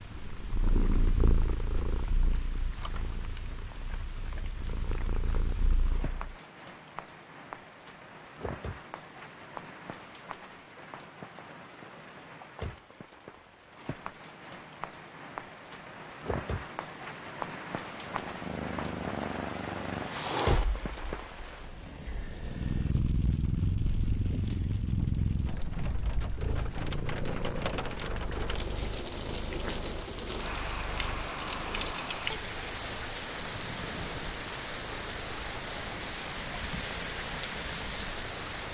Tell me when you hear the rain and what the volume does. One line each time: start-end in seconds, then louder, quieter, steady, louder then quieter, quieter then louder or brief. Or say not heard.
0.0-38.6 louder.